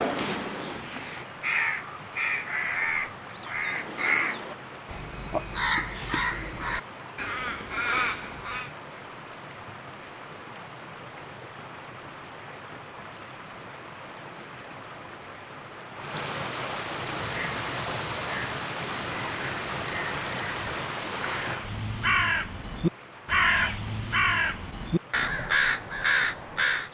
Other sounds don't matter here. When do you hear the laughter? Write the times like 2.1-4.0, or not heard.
not heard.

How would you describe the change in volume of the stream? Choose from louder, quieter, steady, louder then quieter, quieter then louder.
louder then quieter.